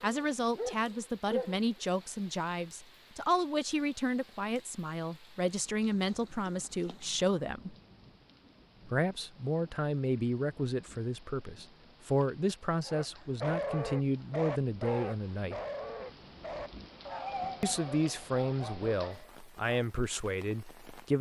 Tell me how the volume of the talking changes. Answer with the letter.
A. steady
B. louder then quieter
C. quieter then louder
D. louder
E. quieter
A.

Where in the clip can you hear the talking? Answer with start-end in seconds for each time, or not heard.
0.0-7.8, 8.8-15.6, 17.6-21.1.